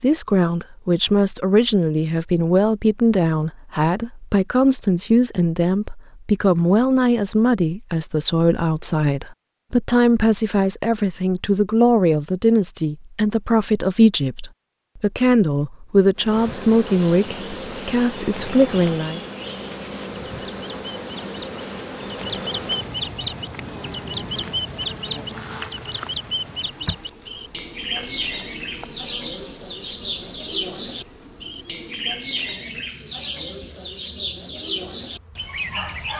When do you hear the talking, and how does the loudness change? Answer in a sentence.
The talking can be heard from 0.0 to 19.2 s, at a steady volume.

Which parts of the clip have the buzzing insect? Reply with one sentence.
The buzzing insect can be heard from 16.1 to 36.0 s.